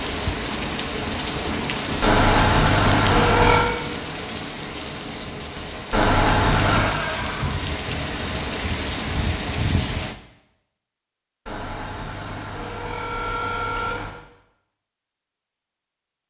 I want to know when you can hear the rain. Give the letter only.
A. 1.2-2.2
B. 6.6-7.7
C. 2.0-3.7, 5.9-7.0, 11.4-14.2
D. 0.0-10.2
D.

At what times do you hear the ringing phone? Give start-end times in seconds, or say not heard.
2.0-3.7, 5.9-7.0, 11.4-14.2.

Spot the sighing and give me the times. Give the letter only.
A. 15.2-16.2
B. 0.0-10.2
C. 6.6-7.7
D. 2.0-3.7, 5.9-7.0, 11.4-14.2
C.